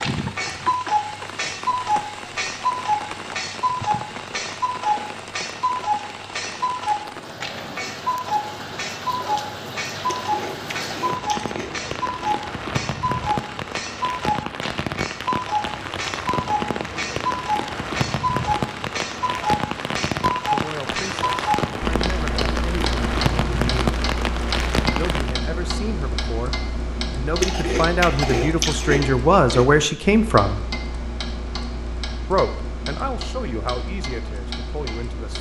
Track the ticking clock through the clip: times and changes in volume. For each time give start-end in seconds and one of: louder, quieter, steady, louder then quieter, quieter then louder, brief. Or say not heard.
0.0-35.3 quieter.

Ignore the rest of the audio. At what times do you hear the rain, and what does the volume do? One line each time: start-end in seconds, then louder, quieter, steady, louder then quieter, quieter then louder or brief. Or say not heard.
0.0-25.4 louder.